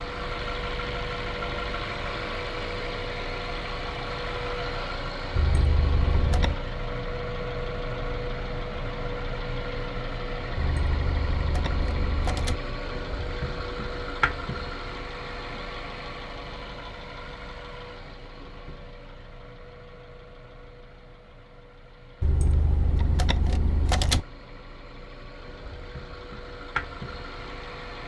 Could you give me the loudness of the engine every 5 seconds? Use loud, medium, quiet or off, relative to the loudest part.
loud, loud, loud, medium, quiet, medium.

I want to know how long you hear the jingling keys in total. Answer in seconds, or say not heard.
5 s.